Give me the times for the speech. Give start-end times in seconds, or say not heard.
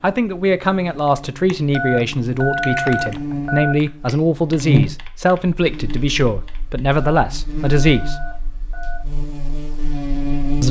0.0-8.2.